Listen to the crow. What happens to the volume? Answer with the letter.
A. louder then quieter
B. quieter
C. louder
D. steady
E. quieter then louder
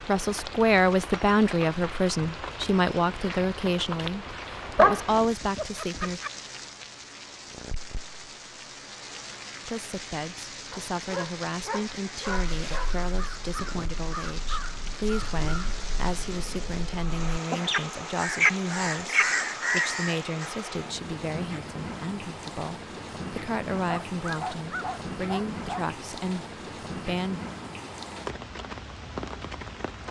E.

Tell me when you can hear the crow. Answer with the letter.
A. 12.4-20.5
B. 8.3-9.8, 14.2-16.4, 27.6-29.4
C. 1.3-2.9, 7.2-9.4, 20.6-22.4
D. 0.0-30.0
A.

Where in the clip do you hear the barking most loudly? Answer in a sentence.
The volume of the barking peaks at 5 seconds.